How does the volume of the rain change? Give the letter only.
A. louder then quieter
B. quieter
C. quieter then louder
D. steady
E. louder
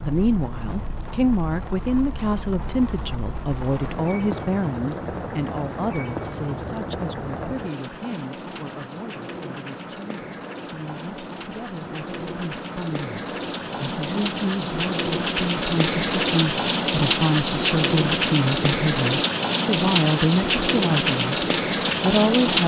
E.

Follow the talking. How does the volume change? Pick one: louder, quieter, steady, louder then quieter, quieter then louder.
quieter then louder.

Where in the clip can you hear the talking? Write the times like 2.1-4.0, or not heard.
0.0-22.6.